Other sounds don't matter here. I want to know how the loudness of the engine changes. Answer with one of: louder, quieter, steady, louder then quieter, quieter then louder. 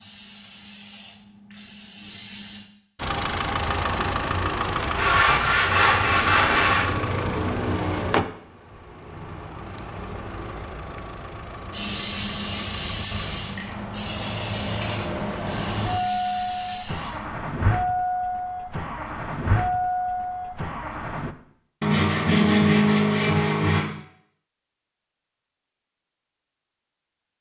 quieter then louder.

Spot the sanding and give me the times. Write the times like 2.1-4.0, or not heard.
5.0-6.9, 21.8-23.9.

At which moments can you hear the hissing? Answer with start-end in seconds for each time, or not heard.
0.0-2.6, 11.7-17.1.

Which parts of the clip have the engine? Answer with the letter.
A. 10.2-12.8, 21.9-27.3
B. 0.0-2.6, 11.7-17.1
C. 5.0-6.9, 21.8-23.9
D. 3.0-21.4
D.